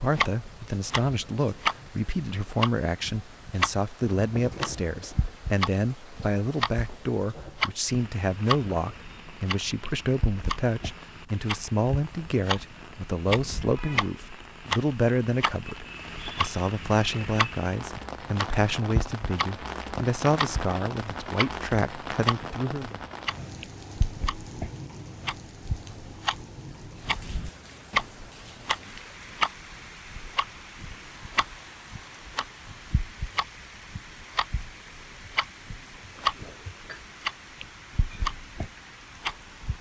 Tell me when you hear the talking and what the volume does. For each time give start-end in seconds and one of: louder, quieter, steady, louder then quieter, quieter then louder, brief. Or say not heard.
0.0-22.9 steady.